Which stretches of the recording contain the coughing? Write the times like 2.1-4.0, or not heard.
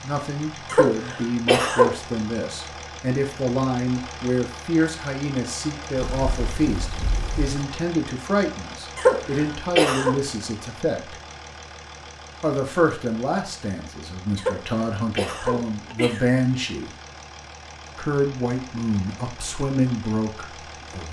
0.7-1.9, 8.9-10.2, 14.3-16.2.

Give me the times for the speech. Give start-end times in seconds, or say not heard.
0.0-11.2, 12.4-16.9, 17.9-21.0.